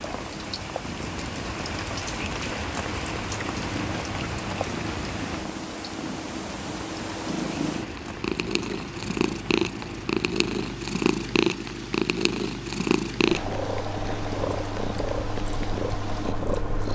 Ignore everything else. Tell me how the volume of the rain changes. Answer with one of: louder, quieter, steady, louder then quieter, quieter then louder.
quieter.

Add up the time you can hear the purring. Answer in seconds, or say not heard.
17 s.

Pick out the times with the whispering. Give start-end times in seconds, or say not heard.
not heard.